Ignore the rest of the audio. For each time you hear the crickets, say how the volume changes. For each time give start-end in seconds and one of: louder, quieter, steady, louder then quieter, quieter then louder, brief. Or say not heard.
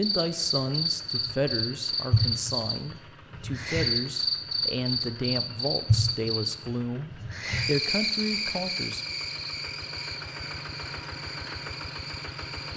0.0-12.7 quieter.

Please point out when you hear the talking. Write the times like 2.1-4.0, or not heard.
0.0-9.2.